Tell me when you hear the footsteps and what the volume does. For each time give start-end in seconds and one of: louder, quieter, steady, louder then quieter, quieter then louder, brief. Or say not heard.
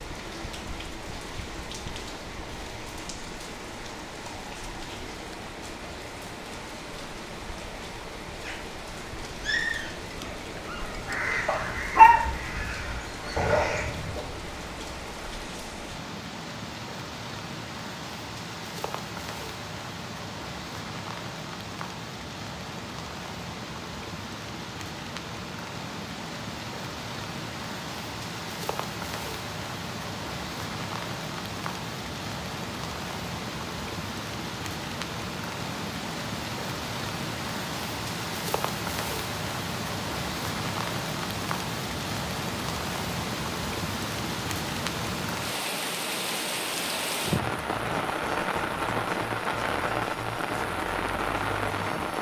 not heard.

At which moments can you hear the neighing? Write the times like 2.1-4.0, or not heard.
not heard.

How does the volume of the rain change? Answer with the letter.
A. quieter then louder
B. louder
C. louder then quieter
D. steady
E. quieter
B.